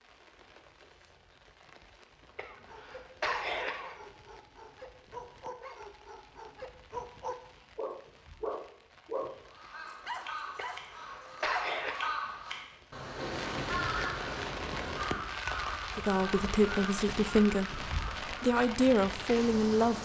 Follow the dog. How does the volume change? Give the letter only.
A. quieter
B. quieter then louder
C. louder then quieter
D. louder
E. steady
D.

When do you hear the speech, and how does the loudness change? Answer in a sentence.
The speech can be heard from 15.9 to 20.0 s, getting quieter then louder.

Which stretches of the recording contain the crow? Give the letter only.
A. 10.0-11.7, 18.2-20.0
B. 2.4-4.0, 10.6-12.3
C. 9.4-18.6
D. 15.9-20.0
C.